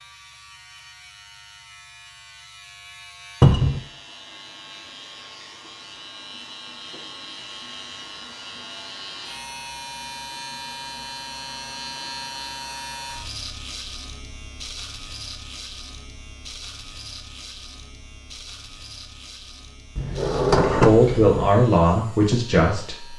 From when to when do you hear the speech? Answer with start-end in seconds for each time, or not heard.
20.6-23.1.